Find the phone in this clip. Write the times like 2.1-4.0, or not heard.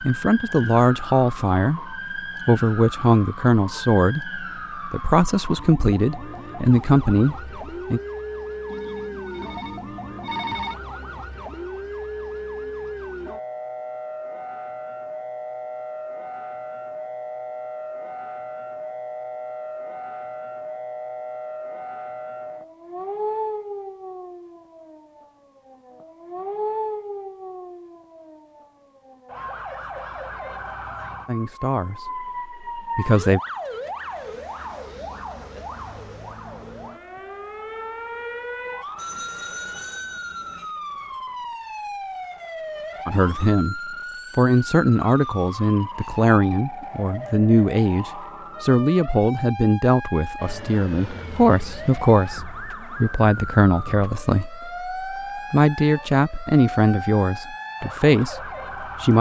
8.7-10.8, 39.0-40.7.